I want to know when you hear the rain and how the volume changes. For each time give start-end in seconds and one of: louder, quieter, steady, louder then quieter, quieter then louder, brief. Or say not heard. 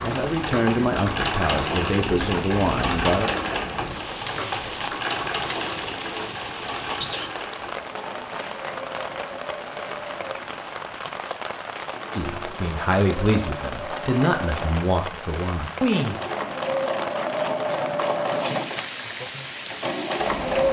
0.0-20.6 steady.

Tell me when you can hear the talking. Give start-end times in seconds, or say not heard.
0.0-3.3, 12.2-16.2.